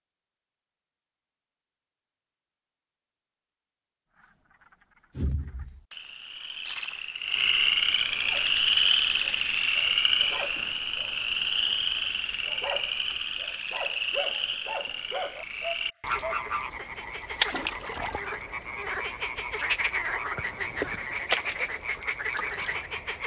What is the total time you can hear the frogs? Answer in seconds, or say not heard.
19 s.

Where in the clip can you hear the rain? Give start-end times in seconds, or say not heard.
not heard.